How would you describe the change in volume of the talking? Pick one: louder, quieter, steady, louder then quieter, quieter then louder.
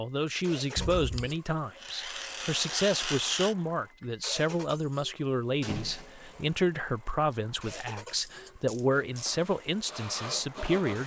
steady.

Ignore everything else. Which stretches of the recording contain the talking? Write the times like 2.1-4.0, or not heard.
0.0-11.0.